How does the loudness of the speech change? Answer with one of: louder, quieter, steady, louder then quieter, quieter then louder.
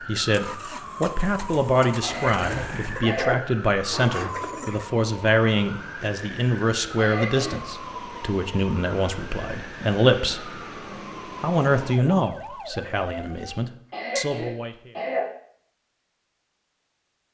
steady.